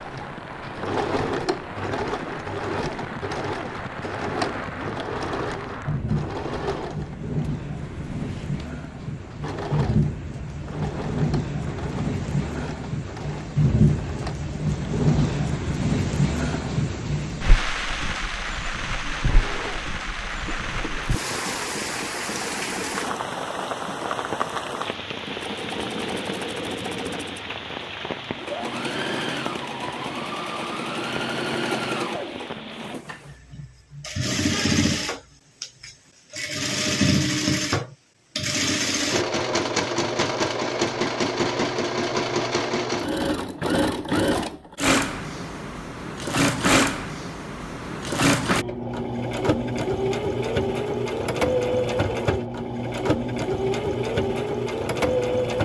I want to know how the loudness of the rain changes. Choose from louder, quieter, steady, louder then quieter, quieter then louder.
louder then quieter.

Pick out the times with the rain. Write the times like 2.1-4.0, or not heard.
0.0-33.0.